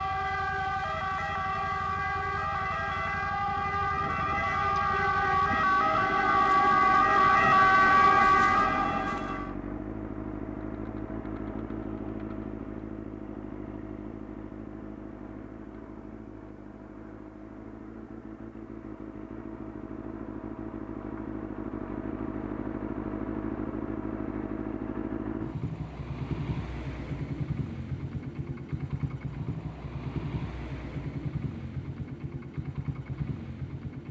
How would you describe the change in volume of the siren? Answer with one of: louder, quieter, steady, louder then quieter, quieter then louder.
louder.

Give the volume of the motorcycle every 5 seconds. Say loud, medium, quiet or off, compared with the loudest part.
medium, loud, loud, medium, loud, loud, loud.